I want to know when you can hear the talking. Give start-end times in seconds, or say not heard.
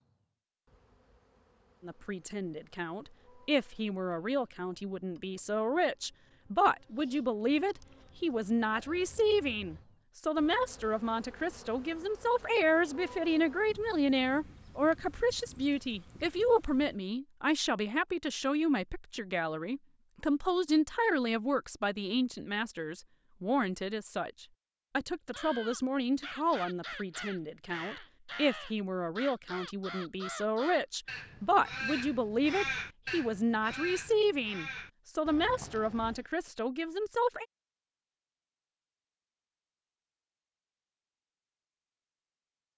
1.8-37.5.